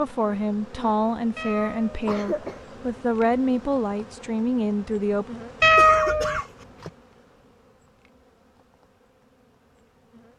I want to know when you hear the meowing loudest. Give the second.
6 s.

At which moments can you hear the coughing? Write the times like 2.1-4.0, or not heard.
2.0-2.6, 5.8-6.9.